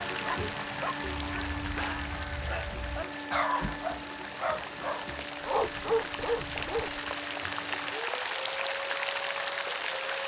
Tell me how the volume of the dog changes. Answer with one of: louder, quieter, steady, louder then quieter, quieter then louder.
louder.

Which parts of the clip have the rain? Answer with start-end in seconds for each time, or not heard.
0.0-10.2.